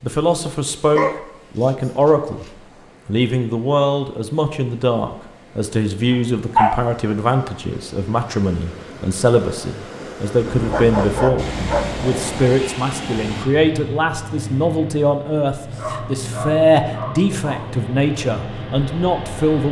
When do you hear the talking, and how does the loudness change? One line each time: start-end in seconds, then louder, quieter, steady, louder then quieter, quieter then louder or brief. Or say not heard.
0.0-2.5 brief
3.0-19.6 steady.